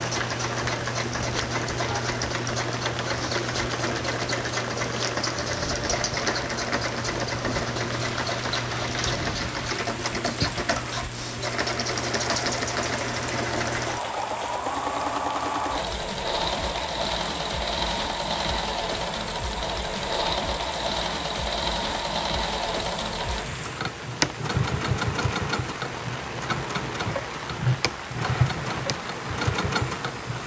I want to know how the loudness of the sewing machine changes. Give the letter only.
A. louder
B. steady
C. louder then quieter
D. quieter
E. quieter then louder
B.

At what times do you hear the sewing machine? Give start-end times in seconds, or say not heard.
0.0-30.4.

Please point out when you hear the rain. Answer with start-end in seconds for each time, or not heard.
0.0-30.4.